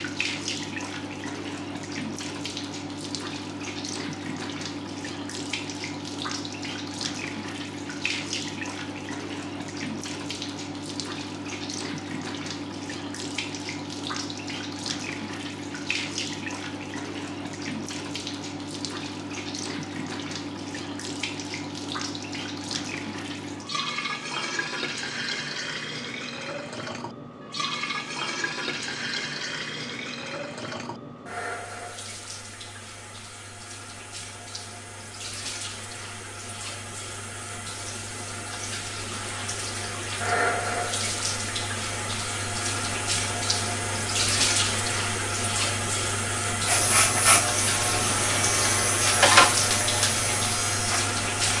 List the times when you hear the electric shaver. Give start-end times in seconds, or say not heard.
46.6-51.5.